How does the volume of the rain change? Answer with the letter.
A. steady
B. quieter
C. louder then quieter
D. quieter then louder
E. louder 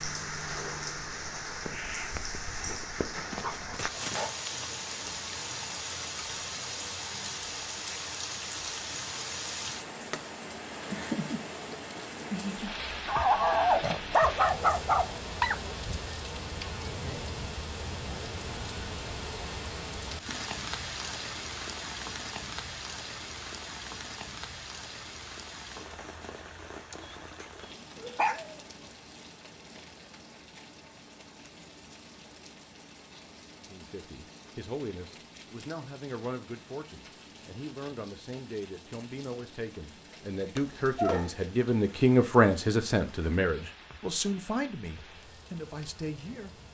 B.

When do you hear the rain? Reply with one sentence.
The rain can be heard from 0.0 to 46.7 s.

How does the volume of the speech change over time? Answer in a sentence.
The volume of the speech goes up, then down.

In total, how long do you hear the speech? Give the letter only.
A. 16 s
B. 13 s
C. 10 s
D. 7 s
B.